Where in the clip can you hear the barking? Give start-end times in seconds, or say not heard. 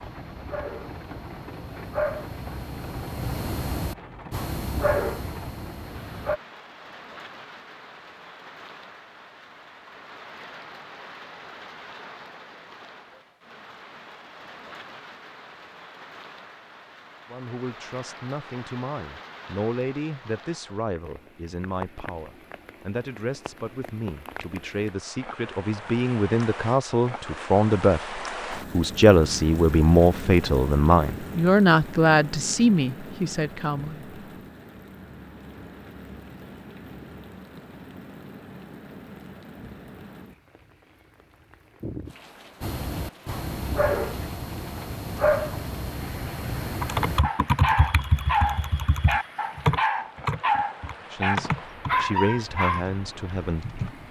0.0-6.4, 42.6-52.9.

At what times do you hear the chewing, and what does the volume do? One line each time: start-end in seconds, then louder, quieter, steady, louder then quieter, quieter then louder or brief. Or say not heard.
not heard.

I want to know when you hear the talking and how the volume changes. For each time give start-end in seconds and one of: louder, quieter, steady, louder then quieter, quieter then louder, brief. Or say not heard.
17.3-34.1 louder
51.1-53.8 brief.